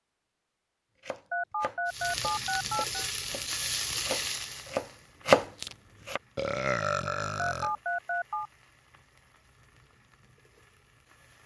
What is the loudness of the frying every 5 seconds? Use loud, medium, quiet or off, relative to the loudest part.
loud, quiet, quiet.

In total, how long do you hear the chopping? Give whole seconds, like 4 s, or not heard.
5 s.